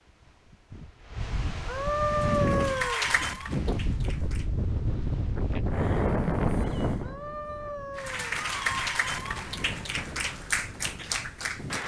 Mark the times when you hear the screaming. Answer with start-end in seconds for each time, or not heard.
1.6-3.0, 7.0-8.3.